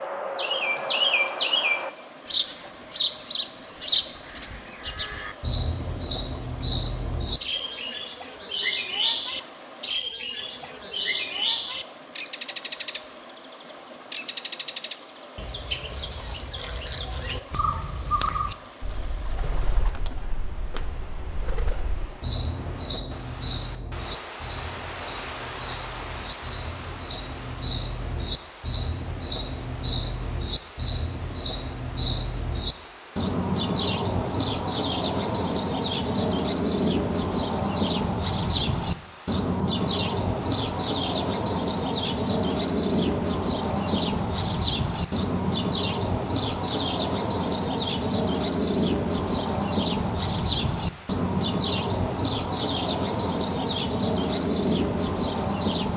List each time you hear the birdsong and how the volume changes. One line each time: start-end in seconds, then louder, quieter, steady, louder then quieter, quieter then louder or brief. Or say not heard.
0.0-55.9 steady.